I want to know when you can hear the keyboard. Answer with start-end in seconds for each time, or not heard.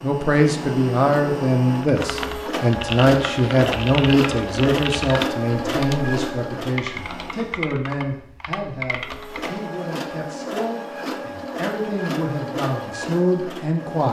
1.8-9.6.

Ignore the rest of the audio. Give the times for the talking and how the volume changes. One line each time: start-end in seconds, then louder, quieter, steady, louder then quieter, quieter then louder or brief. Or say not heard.
0.0-14.0 quieter then louder.